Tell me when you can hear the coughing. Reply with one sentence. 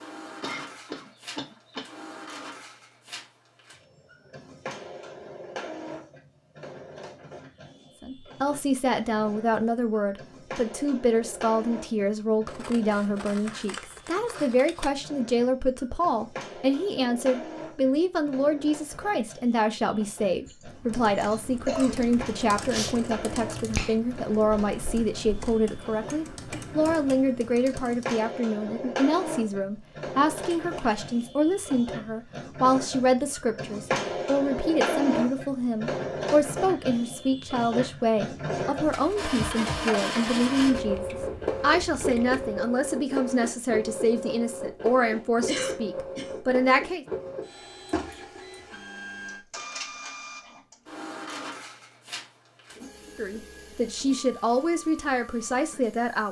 The coughing can be heard from 0.4 to 1.9 s, from 20.4 to 22.1 s and from 45.5 to 46.4 s.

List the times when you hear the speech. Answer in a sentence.
The speech can be heard from 8.0 to 47.0 s and from 53.1 to 56.2 s.